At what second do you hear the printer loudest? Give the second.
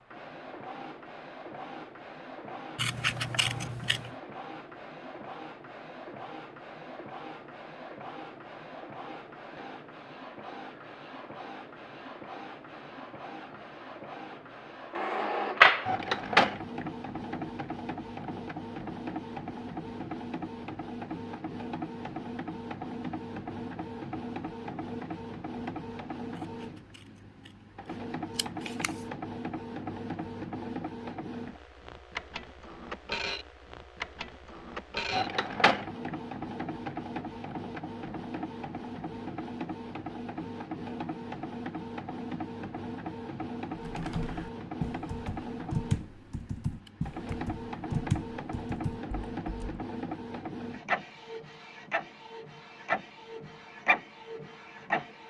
16 s.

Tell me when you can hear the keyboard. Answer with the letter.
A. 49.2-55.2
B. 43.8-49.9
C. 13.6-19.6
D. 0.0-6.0
B.